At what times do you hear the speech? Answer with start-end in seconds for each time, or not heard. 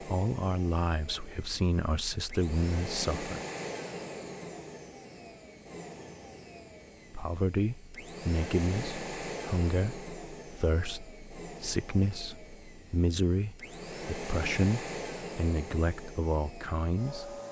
0.0-3.4, 7.1-17.4.